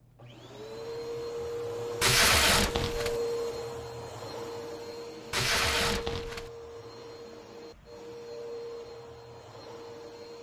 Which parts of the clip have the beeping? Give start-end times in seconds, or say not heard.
not heard.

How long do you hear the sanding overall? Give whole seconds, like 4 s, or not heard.
not heard.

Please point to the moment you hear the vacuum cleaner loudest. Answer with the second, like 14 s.
3 s.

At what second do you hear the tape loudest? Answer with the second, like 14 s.
2 s.